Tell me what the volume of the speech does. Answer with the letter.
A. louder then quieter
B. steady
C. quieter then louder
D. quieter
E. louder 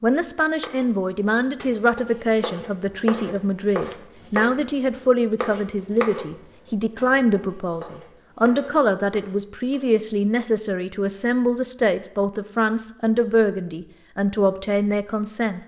B.